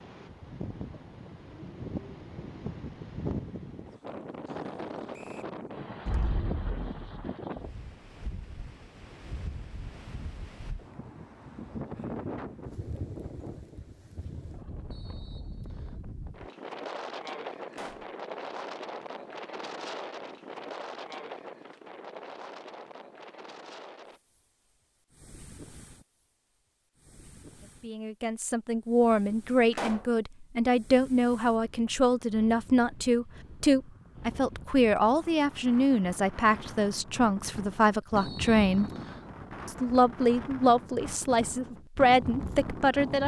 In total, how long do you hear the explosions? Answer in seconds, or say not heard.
2 s.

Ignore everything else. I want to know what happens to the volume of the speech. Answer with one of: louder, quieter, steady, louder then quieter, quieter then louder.
steady.